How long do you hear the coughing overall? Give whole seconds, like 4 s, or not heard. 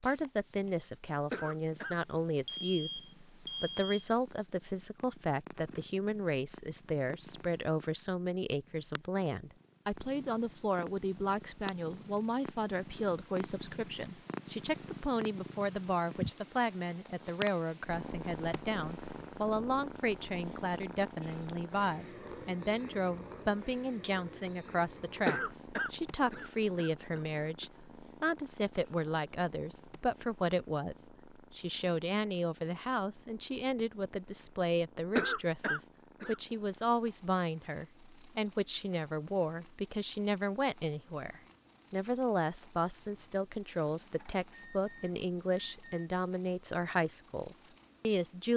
4 s.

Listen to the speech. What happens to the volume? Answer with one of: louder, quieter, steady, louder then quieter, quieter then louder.
steady.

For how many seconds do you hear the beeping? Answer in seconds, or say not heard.
4 s.